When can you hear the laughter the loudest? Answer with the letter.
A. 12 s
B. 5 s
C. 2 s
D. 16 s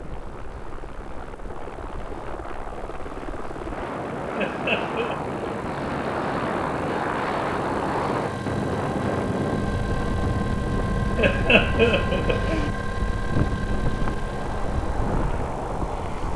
A.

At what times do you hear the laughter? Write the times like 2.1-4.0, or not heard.
4.3-5.2, 11.2-12.7.